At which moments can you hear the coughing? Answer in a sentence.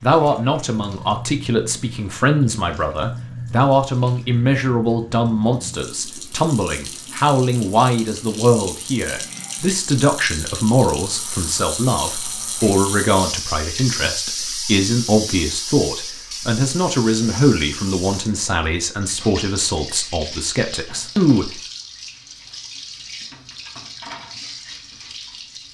The coughing can't be heard in this clip.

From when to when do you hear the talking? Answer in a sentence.
You can hear the talking from 0.0 to 21.6 s.